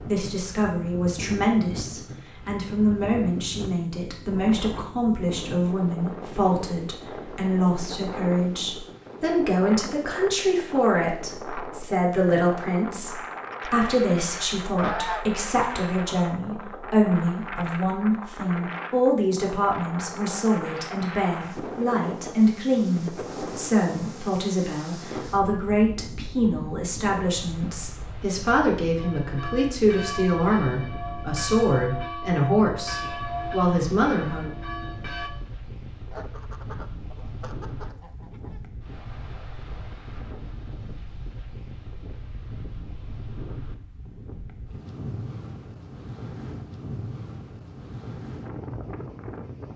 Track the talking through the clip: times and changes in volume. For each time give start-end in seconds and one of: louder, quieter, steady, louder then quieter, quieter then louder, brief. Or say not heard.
0.0-34.5 steady.